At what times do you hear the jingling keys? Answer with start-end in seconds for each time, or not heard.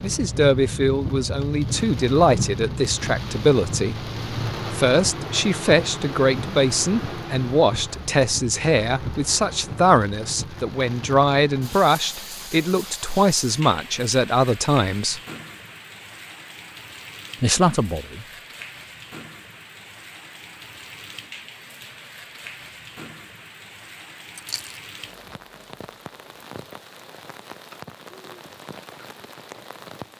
24.4-24.8.